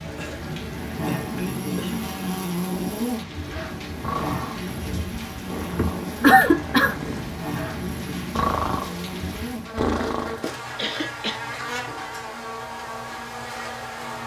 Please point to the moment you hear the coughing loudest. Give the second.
6 s.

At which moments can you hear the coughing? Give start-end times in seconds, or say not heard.
0.1-2.0, 5.8-7.0, 10.8-11.4.